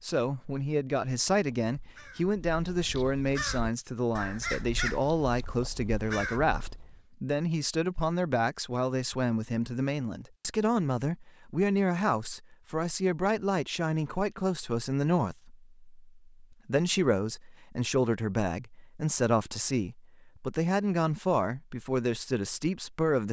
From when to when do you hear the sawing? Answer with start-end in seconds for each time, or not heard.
not heard.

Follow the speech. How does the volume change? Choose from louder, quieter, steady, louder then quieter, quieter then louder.
steady.